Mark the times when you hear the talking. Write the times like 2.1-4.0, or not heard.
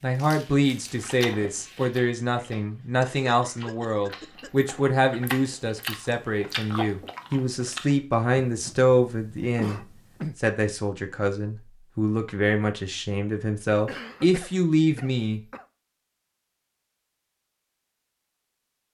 0.0-15.4.